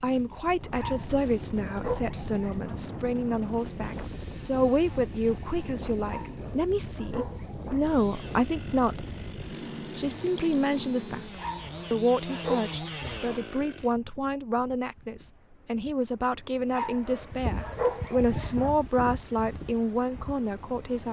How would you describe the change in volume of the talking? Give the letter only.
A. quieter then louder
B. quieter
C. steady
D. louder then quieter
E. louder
C.